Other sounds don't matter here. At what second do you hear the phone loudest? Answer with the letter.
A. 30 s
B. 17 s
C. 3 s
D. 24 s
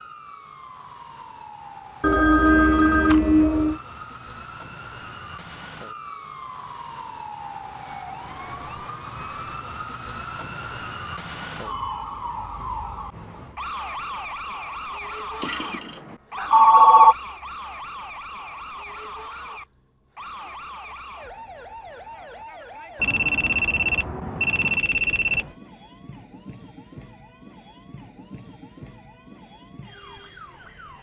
B.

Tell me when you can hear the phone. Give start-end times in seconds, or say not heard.
2.0-3.8, 15.4-17.1, 23.0-25.4.